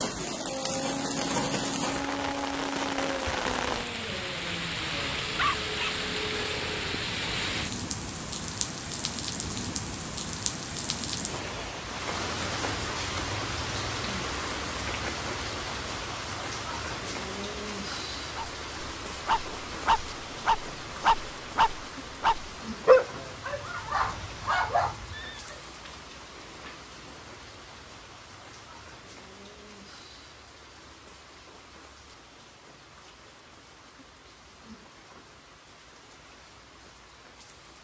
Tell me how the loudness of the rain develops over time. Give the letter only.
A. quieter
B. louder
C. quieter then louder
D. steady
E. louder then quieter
A.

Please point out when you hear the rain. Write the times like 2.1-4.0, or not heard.
0.0-37.7.